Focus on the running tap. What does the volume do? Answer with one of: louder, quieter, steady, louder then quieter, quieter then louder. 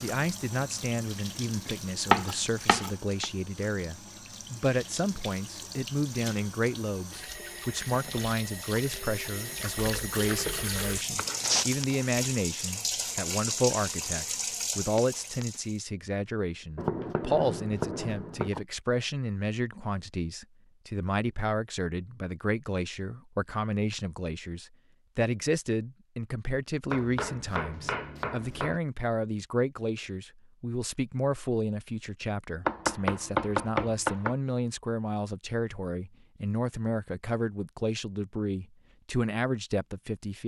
louder.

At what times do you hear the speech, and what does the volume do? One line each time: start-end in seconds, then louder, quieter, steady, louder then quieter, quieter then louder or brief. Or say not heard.
0.0-40.4 steady.